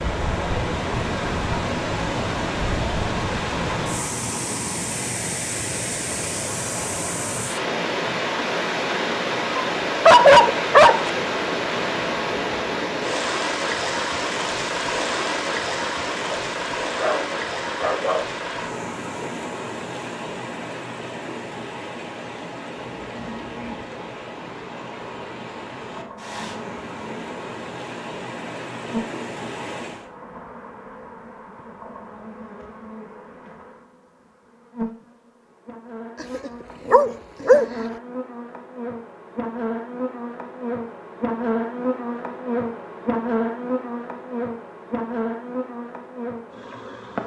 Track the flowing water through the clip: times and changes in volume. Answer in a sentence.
You can hear the flowing water from 0.0 to 30.1 s, getting quieter.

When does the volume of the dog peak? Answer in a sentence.
The volume of the dog peaks at 10 seconds.